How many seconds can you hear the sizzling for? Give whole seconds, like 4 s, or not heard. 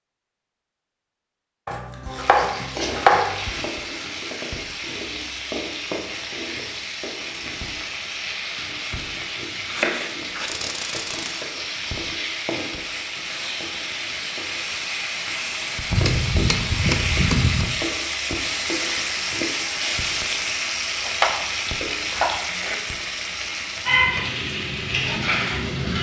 24 s.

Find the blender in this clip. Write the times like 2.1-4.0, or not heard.
not heard.